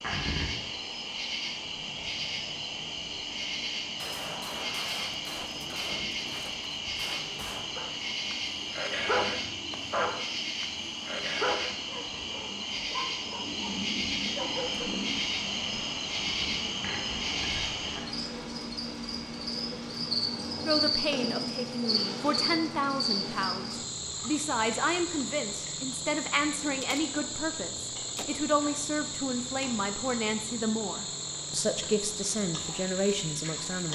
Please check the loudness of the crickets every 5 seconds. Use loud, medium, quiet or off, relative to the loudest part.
loud, loud, loud, loud, loud, medium, medium.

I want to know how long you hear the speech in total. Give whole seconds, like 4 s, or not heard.
13 s.